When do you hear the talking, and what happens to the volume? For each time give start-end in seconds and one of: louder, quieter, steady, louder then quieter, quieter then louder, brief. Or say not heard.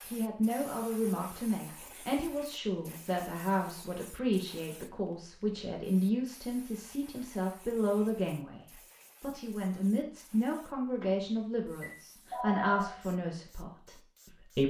0.1-14.6 steady.